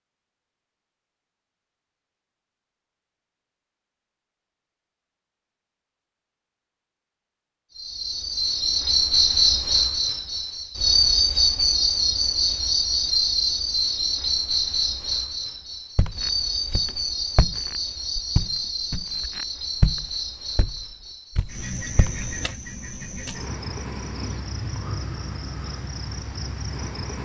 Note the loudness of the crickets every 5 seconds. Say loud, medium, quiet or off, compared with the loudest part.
off, loud, loud, medium, quiet, quiet.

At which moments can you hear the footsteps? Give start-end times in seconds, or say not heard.
15.9-22.2.